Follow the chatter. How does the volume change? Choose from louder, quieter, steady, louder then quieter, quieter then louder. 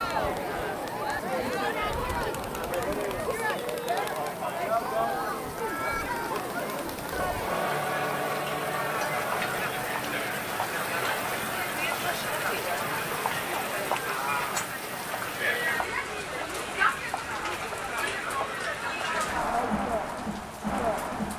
steady.